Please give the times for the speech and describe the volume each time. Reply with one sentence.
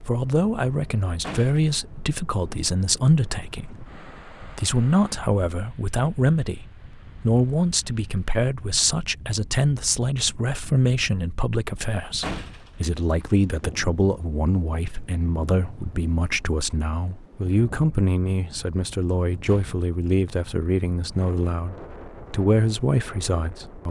The speech can be heard from 0.0 to 23.8 s, at a steady volume.